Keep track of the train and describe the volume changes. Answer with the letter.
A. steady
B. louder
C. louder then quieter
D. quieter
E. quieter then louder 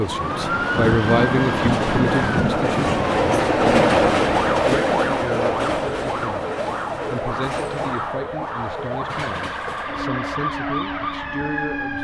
C.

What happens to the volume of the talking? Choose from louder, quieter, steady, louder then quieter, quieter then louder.
quieter.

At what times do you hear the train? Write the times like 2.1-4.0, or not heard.
0.0-11.9.